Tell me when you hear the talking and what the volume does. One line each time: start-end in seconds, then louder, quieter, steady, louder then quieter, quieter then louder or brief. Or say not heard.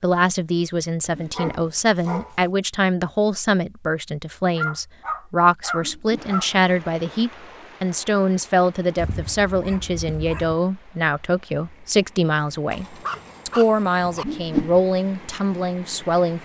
0.0-16.3 steady.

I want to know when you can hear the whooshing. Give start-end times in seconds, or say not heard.
1.2-1.7, 5.8-6.3, 14.2-14.8.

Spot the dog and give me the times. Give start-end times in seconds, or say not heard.
1.0-2.4, 4.5-6.5, 8.9-10.6, 12.7-14.2.